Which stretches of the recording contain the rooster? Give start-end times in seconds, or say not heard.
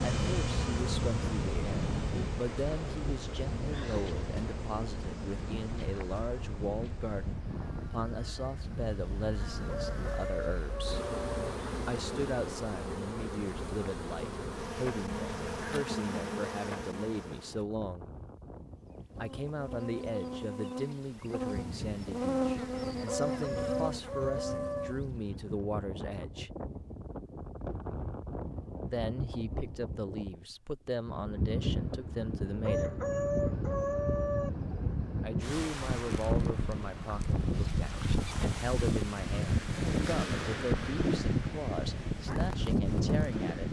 9.7-11.6, 23.1-24.9, 32.6-34.5.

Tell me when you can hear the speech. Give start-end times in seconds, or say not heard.
0.1-11.0, 11.8-18.1, 19.1-26.5, 28.9-33.0, 35.2-43.6.